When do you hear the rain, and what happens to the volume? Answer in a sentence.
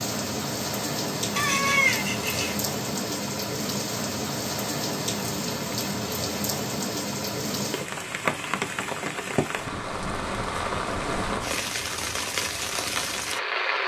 The rain can be heard from 0.0 to 13.8 s, at a steady volume.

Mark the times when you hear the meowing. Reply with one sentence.
You can hear the meowing from 1.4 to 2.5 s.